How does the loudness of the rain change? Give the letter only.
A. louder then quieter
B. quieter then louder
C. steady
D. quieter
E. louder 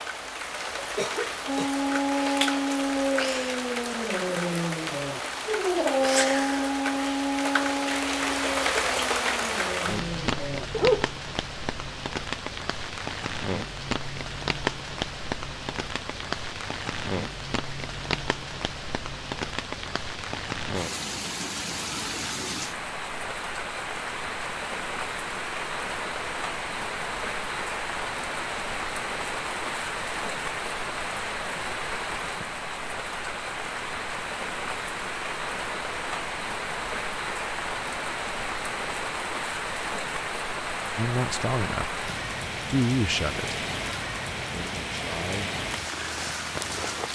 C.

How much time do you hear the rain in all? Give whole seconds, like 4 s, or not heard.
47 s.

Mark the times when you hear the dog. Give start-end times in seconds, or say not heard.
1.4-11.1.